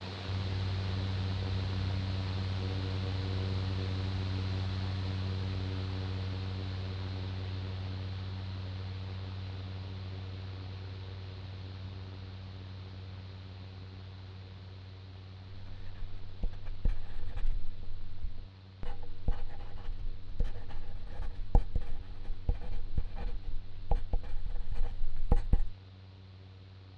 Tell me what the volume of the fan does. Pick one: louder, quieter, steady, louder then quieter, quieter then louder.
quieter.